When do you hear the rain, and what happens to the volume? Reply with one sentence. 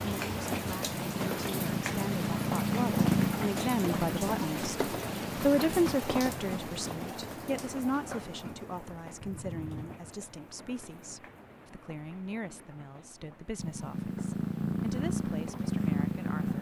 You can hear the rain from 0.0 to 16.5 s, getting quieter.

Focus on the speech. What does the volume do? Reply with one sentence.
The loudness of the speech goes up, then down.